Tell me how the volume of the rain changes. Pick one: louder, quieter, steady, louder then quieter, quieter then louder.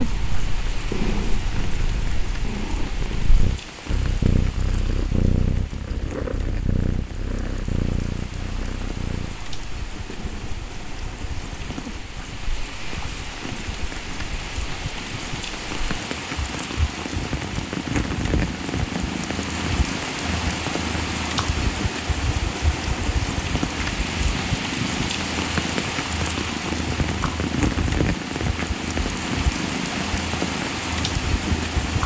louder.